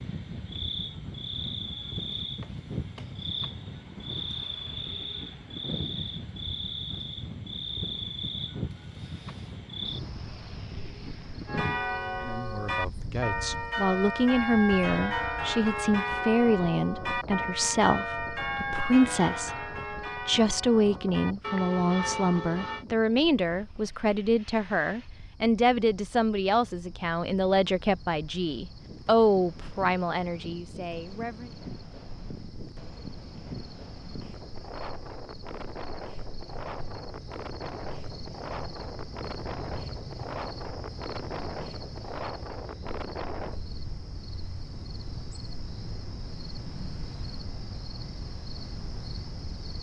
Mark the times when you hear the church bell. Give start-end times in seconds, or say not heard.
11.4-22.9.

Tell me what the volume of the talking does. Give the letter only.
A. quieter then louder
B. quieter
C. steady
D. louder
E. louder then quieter
C.